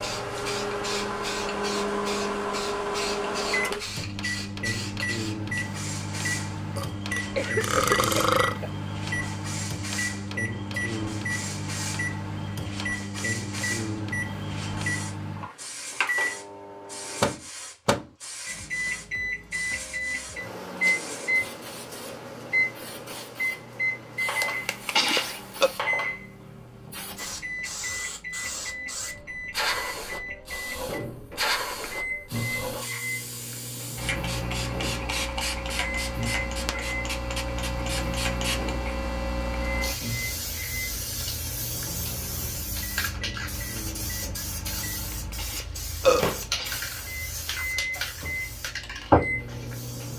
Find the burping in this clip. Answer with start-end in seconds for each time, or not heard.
6.8-8.6, 24.4-25.7, 45.1-46.8.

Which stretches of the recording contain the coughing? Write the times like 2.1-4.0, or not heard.
7.2-8.7.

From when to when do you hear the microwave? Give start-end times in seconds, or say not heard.
0.0-50.1.